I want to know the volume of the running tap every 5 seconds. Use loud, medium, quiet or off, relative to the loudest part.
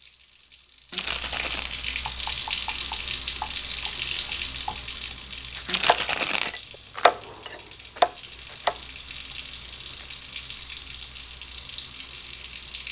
loud, medium, medium.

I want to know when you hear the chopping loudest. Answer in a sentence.
The volume of the chopping peaks at 8 seconds.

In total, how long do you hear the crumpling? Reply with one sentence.
You can hear the crumpling for 3 seconds altogether.